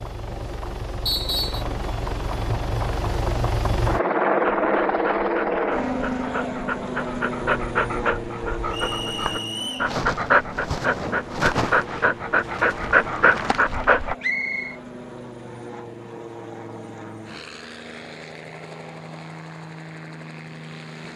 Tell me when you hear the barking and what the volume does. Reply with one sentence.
The barking can be heard from 4.4 to 14.2 s, getting louder.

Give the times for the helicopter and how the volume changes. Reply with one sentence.
The helicopter can be heard from 0.0 to 21.1 s, getting quieter.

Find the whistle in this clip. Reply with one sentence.
The whistle can be heard from 1.1 to 1.6 s, from 8.7 to 9.9 s and from 14.2 to 14.8 s.